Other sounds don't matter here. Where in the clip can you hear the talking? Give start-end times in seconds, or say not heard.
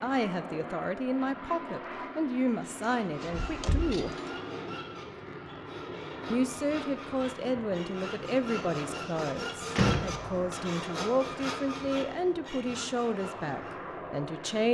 0.0-4.2, 6.3-14.6.